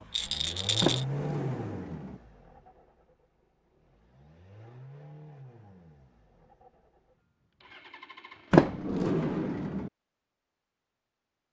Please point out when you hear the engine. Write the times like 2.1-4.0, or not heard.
0.0-8.9.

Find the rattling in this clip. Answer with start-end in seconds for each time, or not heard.
0.1-1.1.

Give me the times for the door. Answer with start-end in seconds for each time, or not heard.
0.8-2.2, 8.5-9.9.